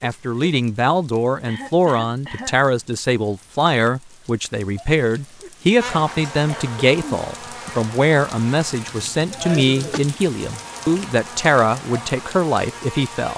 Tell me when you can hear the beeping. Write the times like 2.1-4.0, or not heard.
not heard.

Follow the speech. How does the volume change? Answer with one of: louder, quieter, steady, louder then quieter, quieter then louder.
steady.